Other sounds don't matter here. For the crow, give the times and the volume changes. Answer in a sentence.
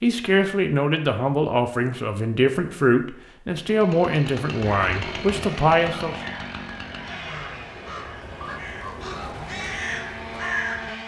The crow can be heard from 4.5 to 11.0 s, getting louder.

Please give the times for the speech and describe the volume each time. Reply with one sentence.
You can hear the speech from 0.0 to 6.3 s, at a steady volume.